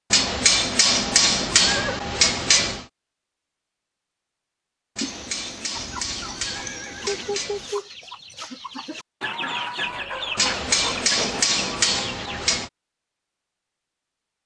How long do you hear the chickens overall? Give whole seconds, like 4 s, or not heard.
7 s.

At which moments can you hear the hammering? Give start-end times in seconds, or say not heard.
0.1-2.9, 5.0-7.7, 10.3-12.7.